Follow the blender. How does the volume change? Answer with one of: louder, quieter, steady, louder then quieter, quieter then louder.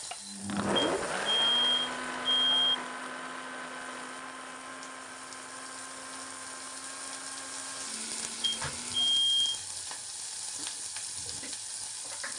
quieter.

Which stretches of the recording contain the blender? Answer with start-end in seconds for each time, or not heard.
0.0-9.3.